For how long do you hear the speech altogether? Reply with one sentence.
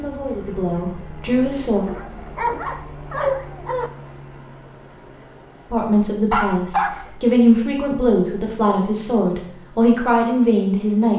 The speech can be heard for 7 seconds in total.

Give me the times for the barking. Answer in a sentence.
You can hear the barking from 1.9 to 3.9 s and from 5.7 to 7.7 s.